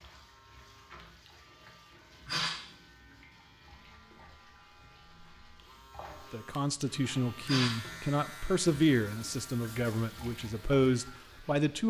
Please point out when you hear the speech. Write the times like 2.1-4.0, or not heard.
6.3-11.8.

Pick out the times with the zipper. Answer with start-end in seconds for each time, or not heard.
not heard.